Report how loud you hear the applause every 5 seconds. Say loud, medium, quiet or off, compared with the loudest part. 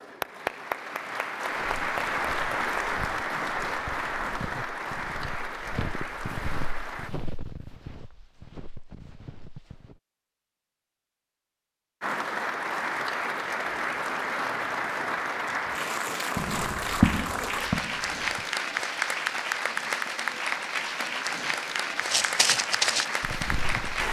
loud, medium, loud, loud, loud.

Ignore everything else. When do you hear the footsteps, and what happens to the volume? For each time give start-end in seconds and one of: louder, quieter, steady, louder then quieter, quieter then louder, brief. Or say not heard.
1.5-10.0 louder then quieter
16.4-18.4 brief
22.1-24.0 brief.